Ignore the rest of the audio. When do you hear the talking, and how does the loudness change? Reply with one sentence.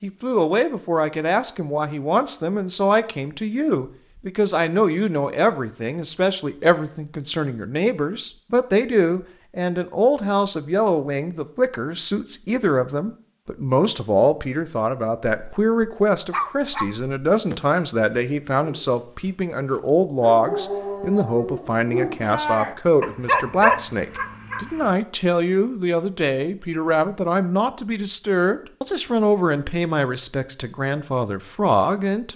The talking can be heard from 0.0 to 32.3 s, at a steady volume.